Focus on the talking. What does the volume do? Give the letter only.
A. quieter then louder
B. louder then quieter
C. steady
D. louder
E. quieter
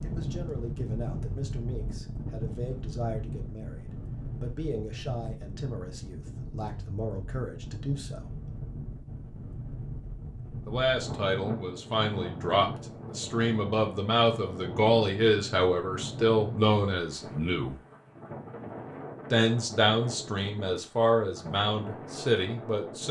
D.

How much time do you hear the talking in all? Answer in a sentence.
You can hear the talking for 19 seconds altogether.